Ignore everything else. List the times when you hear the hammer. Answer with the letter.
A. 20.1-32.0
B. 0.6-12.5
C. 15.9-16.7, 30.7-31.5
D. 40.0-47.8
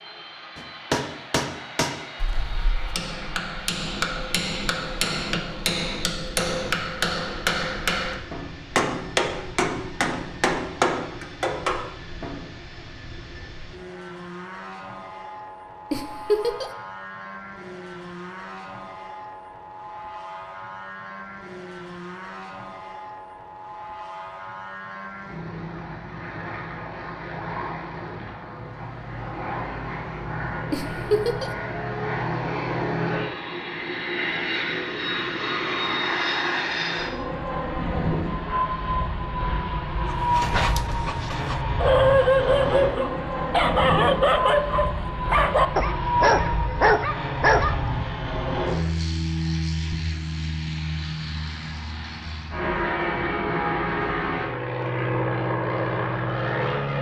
B.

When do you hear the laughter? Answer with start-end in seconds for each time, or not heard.
15.9-16.7, 30.7-31.5.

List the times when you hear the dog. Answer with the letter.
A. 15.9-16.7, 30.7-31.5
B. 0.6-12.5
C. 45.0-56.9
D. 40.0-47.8
D.